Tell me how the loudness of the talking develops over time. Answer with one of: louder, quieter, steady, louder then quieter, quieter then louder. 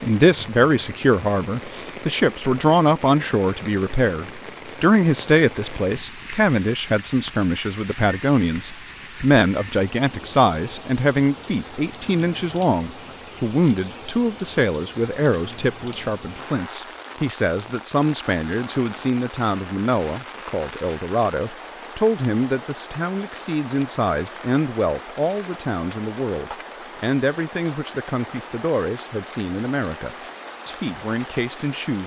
quieter.